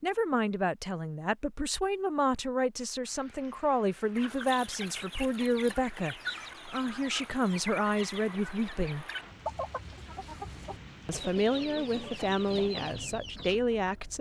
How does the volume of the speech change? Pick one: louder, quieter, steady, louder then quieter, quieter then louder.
steady.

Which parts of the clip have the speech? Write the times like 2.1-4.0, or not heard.
0.0-9.1, 11.1-14.1.